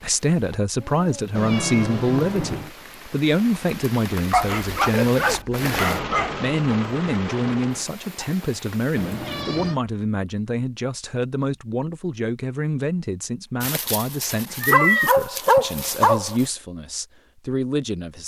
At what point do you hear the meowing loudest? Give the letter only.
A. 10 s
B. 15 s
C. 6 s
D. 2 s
B.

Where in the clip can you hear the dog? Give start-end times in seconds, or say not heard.
4.3-6.3, 13.6-16.4.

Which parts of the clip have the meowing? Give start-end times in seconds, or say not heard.
1.4-2.7, 8.9-9.8, 14.6-15.7.